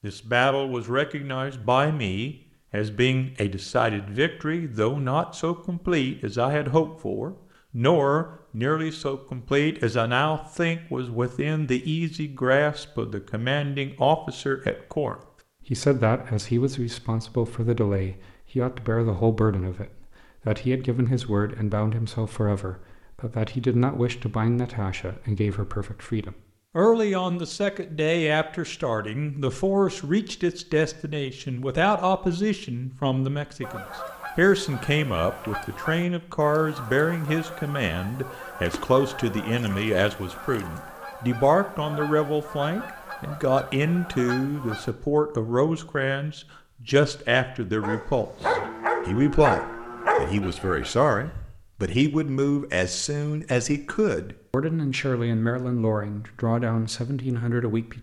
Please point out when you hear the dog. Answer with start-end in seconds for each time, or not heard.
47.8-51.5.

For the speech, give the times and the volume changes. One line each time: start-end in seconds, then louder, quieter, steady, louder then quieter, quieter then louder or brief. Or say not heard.
0.0-57.9 steady.